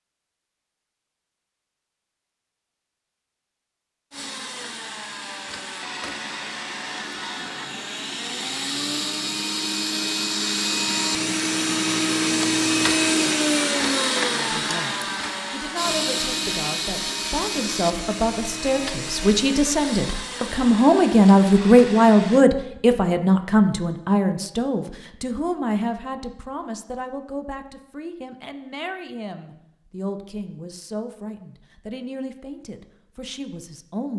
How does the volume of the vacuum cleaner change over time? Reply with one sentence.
The loudness of the vacuum cleaner goes up, then down.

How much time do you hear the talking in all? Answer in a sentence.
You can hear the talking for 20 seconds altogether.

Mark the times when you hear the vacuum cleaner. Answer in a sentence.
You can hear the vacuum cleaner from 4.1 to 22.4 s.